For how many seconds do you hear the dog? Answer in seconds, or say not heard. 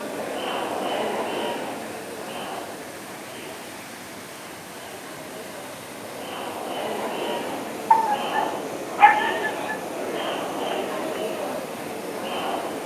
2 s.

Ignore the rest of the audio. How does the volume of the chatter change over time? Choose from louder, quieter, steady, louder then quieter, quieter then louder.
quieter then louder.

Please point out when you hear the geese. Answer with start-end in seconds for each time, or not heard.
not heard.